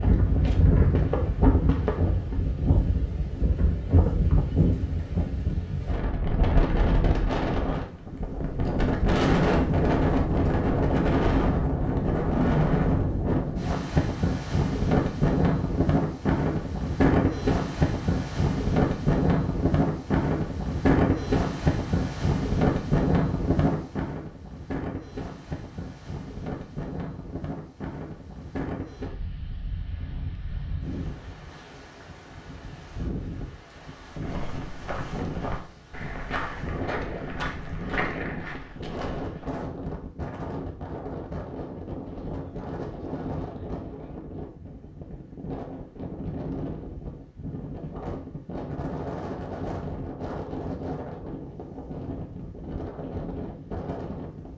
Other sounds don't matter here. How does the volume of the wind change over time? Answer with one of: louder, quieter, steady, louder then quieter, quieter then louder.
quieter.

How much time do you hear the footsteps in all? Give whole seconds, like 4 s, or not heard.
8 s.